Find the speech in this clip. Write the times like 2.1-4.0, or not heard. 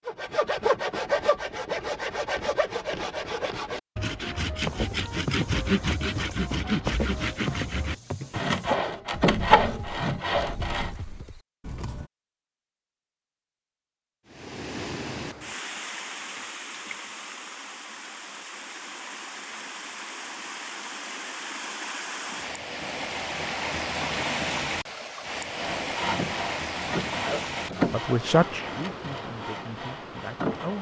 27.9-30.7.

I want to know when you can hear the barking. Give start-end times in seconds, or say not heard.
not heard.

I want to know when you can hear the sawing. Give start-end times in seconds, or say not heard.
0.1-10.9, 25.6-30.7.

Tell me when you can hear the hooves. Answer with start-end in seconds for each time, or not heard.
4.7-12.1.